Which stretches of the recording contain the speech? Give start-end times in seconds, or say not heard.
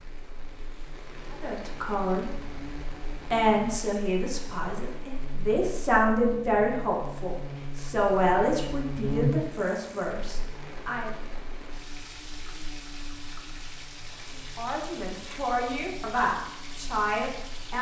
1.3-2.2, 3.3-11.1, 14.6-17.7.